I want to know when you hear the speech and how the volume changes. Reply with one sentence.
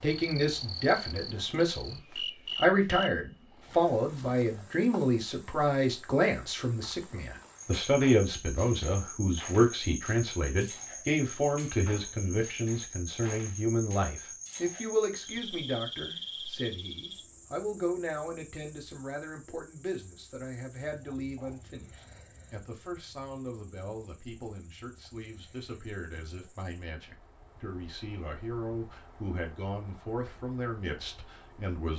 The speech can be heard from 0.0 to 31.9 s, getting quieter.